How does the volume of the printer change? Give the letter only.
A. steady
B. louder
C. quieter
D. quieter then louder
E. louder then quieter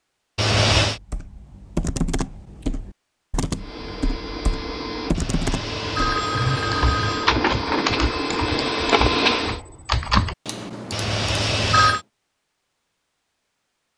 B.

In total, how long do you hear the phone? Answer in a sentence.
You can hear the phone for 4 seconds altogether.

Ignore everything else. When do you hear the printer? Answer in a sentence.
You can hear the printer from 3.5 to 9.6 s.